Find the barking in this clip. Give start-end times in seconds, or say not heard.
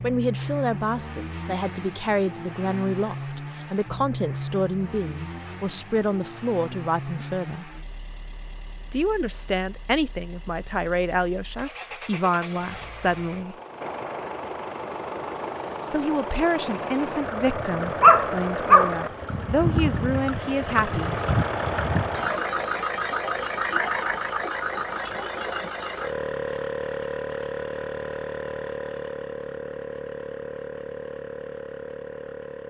18.0-18.9.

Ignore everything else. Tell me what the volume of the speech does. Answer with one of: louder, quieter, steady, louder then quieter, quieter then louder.
steady.